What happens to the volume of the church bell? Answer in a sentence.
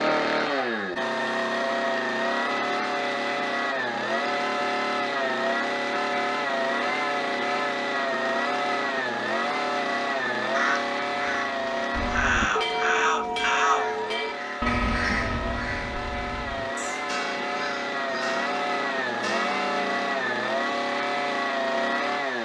The volume of the church bell goes down.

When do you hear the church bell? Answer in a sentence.
The church bell can be heard from 11.9 to 20.4 s.